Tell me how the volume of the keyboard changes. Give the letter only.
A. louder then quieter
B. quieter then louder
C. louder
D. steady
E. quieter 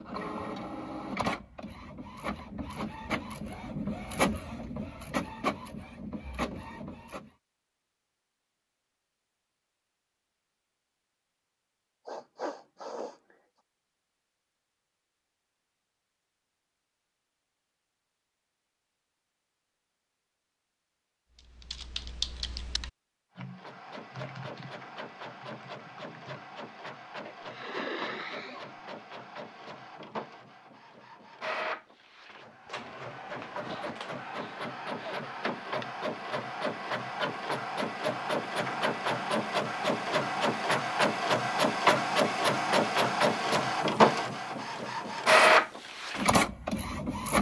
E.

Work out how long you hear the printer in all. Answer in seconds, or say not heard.
31 s.